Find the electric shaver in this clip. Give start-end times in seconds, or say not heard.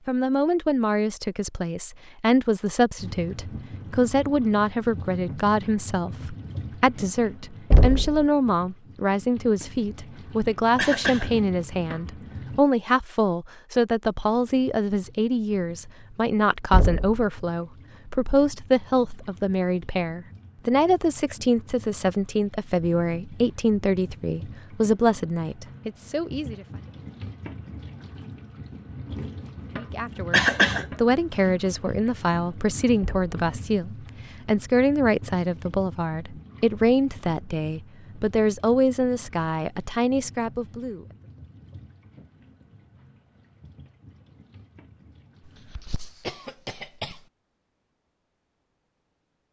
not heard.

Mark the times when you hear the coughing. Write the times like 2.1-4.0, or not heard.
10.8-11.3, 30.3-30.9, 45.5-47.2.